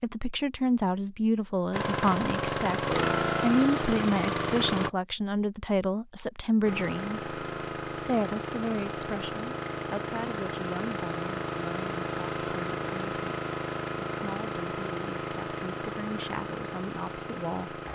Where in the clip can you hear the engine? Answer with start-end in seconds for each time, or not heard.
1.7-4.9, 6.6-17.9.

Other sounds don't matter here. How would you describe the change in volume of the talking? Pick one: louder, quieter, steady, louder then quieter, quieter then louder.
quieter.